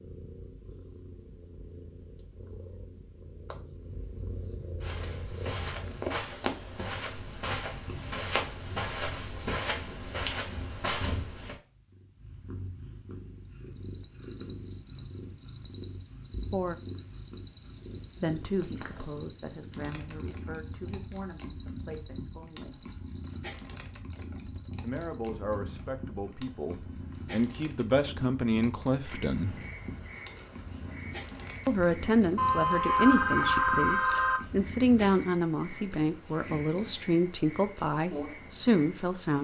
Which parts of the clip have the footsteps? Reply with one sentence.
The footsteps can be heard from 4.8 to 11.6 s.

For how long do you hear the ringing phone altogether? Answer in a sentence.
The ringing phone can be heard for 2 seconds in total.